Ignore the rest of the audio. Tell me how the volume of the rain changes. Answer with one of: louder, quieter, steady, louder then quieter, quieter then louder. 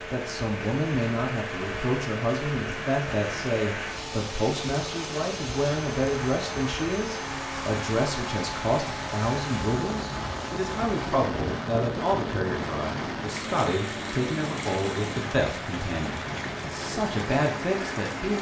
steady.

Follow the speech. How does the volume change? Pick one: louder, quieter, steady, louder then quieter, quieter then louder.
steady.